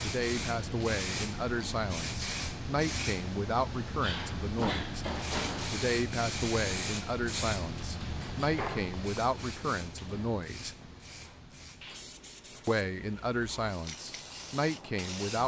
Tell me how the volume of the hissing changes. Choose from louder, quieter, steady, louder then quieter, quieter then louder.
quieter.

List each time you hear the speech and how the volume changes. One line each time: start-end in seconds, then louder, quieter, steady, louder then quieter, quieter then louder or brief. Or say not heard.
0.0-5.0 steady
5.7-10.8 steady
12.7-15.4 brief.